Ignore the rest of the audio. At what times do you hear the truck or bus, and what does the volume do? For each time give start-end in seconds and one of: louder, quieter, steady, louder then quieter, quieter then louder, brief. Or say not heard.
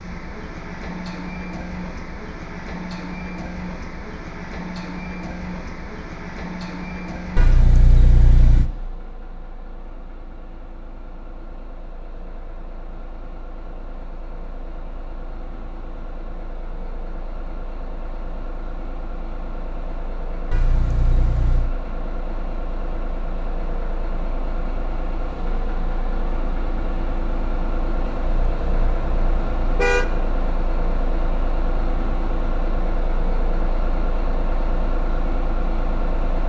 0.0-36.4 quieter then louder.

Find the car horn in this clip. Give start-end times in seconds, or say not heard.
7.3-8.7, 20.5-21.7, 28.1-30.1.